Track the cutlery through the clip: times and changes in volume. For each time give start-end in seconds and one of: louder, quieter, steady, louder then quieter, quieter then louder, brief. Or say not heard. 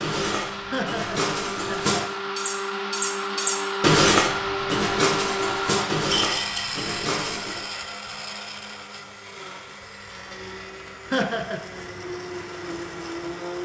0.0-7.7 louder then quieter.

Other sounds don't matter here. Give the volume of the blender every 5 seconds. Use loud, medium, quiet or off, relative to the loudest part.
loud, loud, medium.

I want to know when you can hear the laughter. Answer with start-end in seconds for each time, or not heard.
0.7-2.3, 11.1-11.7.